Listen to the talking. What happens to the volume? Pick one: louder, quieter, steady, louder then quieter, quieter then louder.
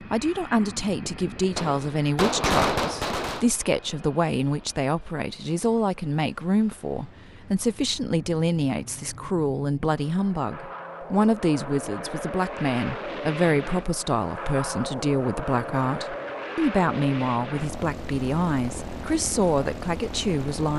steady.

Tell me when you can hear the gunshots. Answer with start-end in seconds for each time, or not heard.
1.6-3.5.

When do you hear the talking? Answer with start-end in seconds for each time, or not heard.
0.0-20.7.